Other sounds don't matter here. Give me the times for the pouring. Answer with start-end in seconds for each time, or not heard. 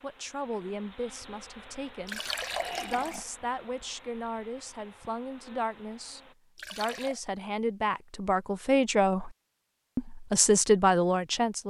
2.0-3.2, 6.5-7.2.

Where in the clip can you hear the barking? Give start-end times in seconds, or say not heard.
not heard.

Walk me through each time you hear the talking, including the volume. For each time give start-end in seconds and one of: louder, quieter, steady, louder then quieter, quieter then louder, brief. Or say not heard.
0.0-2.2 brief
2.8-9.3 louder
9.9-11.6 brief.